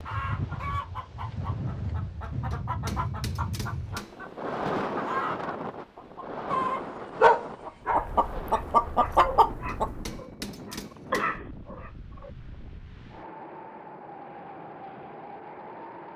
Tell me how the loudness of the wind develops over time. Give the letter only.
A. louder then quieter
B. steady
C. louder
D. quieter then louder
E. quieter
E.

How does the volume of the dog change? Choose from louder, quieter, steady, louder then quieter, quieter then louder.
quieter then louder.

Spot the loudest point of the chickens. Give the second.
9 s.